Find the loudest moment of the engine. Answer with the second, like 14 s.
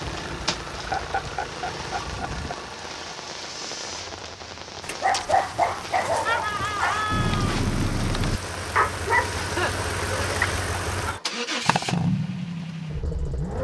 12 s.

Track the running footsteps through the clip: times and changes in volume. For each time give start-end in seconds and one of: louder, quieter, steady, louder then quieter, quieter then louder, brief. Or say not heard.
not heard.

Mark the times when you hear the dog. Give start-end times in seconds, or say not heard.
4.8-11.2.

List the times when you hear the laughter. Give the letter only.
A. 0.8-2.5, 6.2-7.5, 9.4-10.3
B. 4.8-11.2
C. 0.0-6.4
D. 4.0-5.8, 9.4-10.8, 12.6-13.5
A.